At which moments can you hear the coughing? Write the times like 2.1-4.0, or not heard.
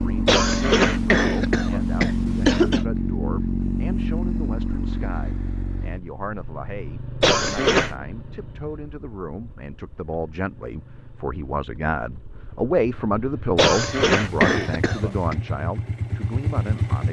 0.2-2.9, 7.2-8.0, 13.6-15.3.